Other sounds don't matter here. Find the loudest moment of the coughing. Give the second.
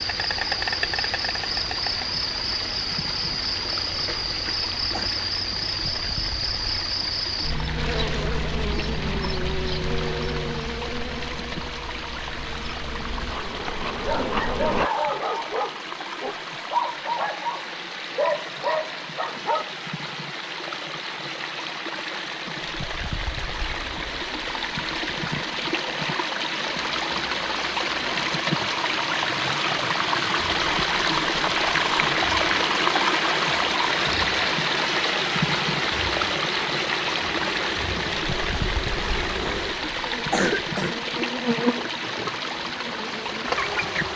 40 s.